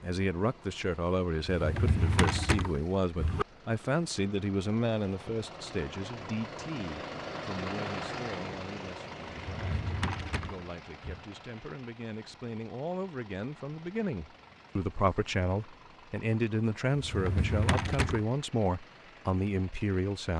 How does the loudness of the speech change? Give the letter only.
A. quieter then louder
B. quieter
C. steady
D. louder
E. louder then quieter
A.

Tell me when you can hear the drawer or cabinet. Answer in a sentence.
You can hear the drawer or cabinet from 1.5 to 3.5 s, from 9.3 to 11.2 s and from 16.9 to 18.2 s.